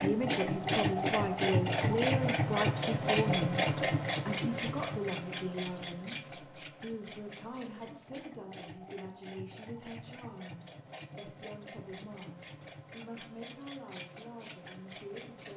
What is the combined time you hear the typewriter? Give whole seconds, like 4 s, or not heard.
not heard.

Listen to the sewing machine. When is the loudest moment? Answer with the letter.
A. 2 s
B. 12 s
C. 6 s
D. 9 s
A.